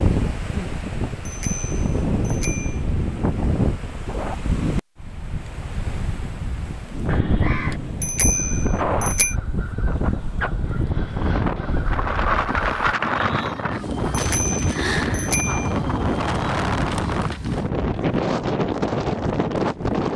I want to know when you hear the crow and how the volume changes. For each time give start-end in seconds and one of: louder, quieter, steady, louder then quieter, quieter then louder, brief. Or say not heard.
7.0-12.9 quieter then louder.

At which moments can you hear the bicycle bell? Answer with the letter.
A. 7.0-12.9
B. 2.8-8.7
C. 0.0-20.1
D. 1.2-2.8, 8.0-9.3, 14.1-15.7
D.